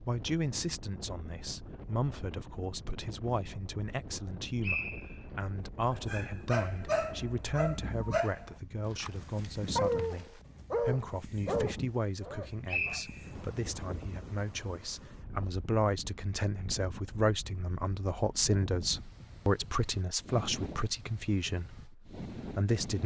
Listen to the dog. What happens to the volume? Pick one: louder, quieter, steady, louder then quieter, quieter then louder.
steady.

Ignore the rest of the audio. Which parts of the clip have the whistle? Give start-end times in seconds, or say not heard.
4.6-5.2, 12.7-13.4.